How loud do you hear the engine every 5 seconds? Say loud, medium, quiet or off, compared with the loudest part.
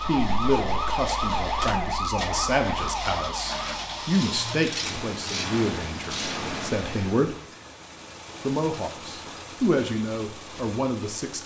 loud, loud, medium.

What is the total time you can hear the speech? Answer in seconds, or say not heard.
10 s.